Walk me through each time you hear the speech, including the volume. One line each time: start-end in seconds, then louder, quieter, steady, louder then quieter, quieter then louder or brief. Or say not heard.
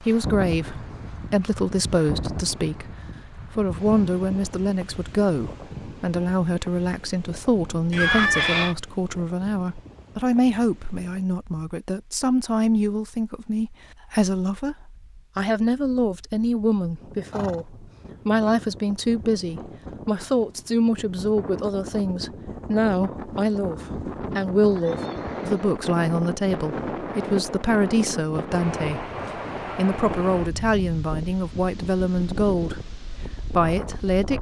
0.0-34.3 steady.